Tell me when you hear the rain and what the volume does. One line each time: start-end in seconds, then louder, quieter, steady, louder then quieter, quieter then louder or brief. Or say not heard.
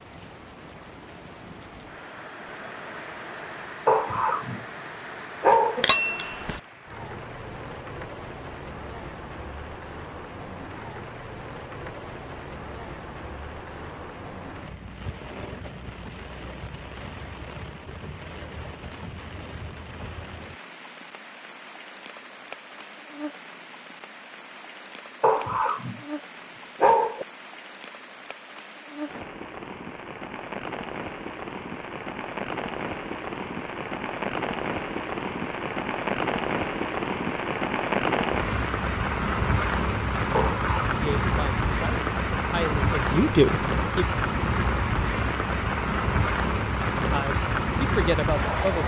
0.0-48.8 louder.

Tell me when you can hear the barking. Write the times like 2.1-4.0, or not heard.
3.9-5.9, 25.2-27.2, 40.3-41.5.